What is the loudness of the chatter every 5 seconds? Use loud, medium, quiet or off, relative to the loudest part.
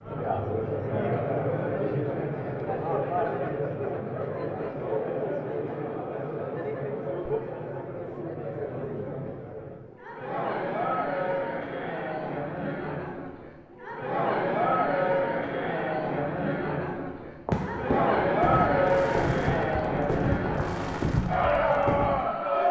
loud, medium, loud, loud, loud.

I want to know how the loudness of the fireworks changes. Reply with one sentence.
The loudness of the fireworks stays about the same.